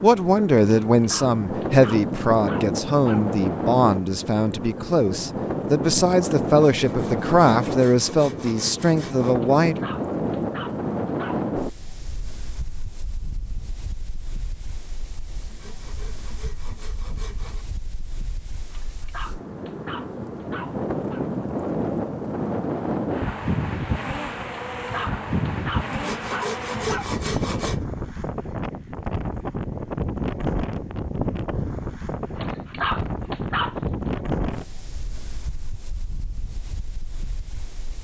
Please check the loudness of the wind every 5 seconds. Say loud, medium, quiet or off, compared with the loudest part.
loud, loud, loud, quiet, loud, loud, loud, quiet.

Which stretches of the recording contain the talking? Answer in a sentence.
You can hear the talking from 0.0 to 9.8 s.